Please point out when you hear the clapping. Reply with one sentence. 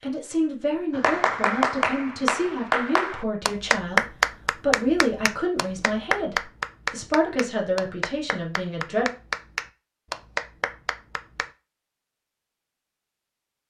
The clapping can be heard from 0.9 to 11.5 s.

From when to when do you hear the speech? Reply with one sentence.
The speech can be heard from 0.0 to 9.1 s.